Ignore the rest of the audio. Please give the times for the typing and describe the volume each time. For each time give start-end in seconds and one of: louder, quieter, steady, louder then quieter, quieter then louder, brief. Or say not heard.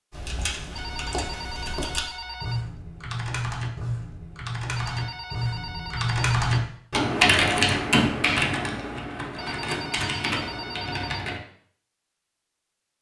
0.1-11.4 louder then quieter.